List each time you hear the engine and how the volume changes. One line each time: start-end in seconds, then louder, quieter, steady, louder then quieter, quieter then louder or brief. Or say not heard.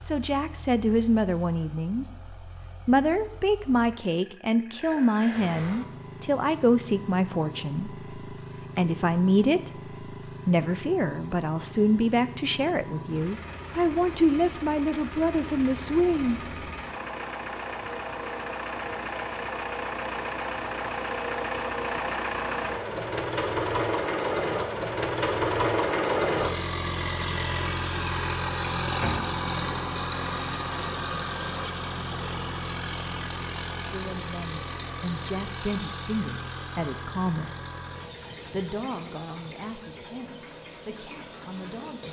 0.0-42.0 louder then quieter.